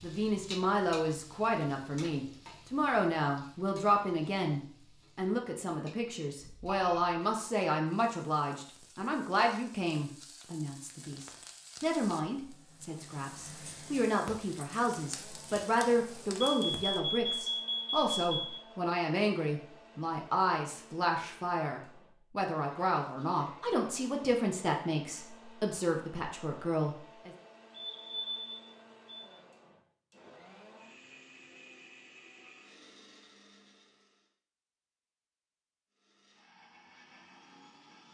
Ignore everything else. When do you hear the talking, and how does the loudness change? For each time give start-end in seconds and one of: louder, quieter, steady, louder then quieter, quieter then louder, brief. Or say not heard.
0.0-27.3 steady.